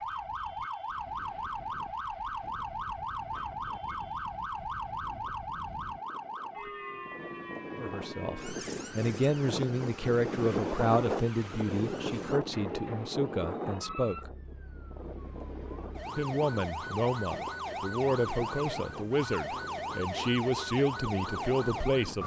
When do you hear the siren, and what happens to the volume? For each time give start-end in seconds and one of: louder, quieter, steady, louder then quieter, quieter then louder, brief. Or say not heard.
0.0-22.2 quieter then louder.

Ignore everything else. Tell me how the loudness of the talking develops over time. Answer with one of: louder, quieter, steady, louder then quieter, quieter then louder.
steady.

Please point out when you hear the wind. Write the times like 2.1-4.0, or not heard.
0.0-22.2.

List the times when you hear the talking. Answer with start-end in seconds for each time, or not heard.
7.8-14.3, 16.1-22.2.